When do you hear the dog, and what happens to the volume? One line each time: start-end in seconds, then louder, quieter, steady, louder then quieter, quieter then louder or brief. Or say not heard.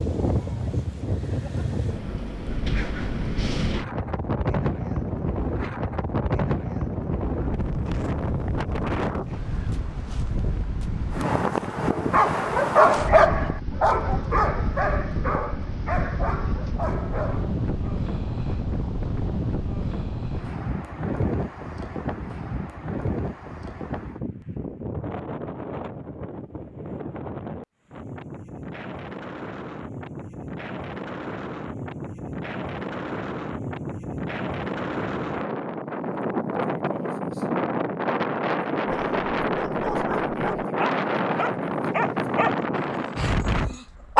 11.8-17.9 quieter
38.9-44.1 louder then quieter.